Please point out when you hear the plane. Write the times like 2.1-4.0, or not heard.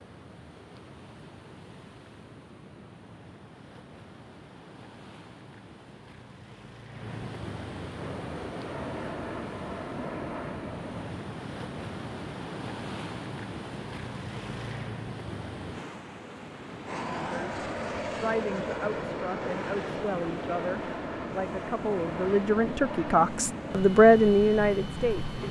8.0-11.1, 16.9-25.4.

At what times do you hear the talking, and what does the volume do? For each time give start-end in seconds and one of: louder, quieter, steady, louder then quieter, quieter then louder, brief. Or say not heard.
17.2-25.4 louder.